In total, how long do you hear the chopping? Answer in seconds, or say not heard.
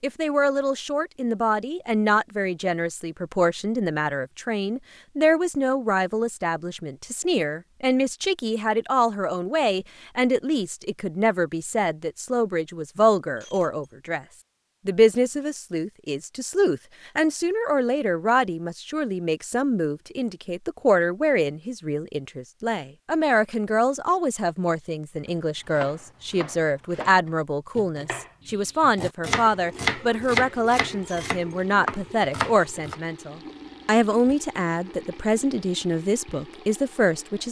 8 s.